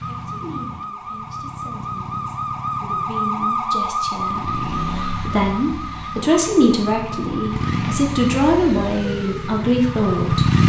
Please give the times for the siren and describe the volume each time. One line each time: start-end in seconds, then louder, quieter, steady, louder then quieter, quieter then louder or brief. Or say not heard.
0.0-10.6 louder then quieter.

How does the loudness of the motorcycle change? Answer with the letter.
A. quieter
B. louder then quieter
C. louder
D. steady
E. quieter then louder
C.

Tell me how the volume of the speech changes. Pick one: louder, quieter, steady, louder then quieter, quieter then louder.
louder.